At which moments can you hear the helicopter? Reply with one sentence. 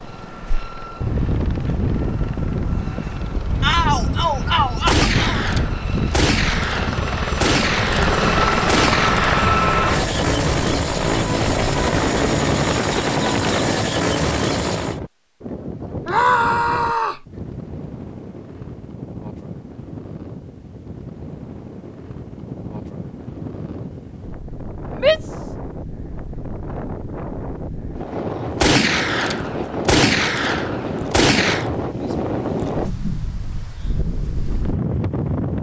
The helicopter can be heard from 0.0 to 15.0 s.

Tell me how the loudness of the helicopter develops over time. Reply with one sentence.
The loudness of the helicopter goes up.